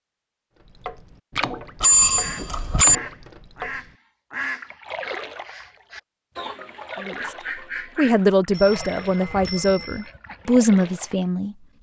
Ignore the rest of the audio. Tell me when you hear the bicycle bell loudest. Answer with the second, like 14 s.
2 s.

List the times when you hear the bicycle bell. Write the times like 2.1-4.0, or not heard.
1.8-3.0, 8.5-10.1.